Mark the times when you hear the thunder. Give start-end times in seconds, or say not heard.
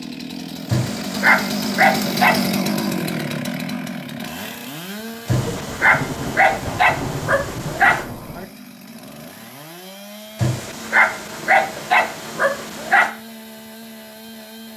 5.3-8.4.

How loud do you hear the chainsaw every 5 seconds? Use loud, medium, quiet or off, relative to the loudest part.
loud, quiet, quiet.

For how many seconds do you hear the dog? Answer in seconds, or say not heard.
7 s.